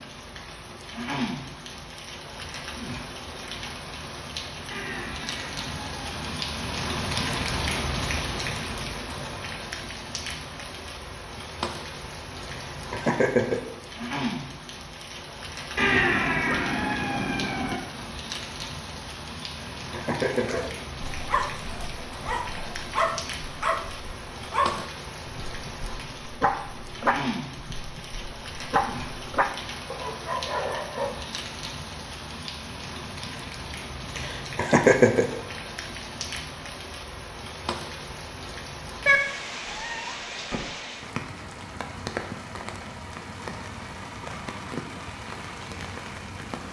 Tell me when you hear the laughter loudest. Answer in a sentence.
The volume of the laughter peaks at 35 seconds.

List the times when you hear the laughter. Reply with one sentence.
You can hear the laughter from 12.4 to 13.7 s, from 19.5 to 20.7 s and from 34.1 to 35.4 s.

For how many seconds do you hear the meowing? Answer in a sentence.
You can hear the meowing for 5 seconds altogether.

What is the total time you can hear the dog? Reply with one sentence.
The dog can be heard for 11 seconds in total.